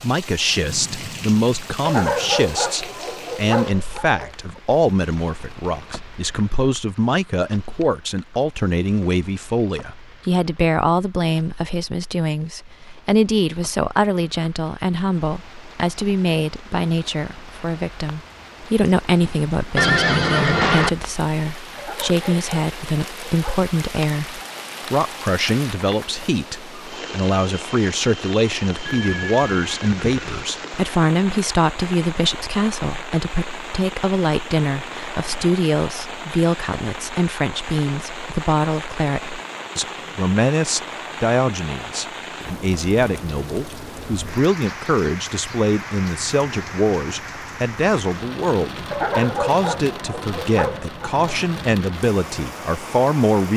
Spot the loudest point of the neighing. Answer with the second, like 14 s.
20 s.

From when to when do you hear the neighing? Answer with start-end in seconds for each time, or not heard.
19.8-20.9, 28.9-30.4.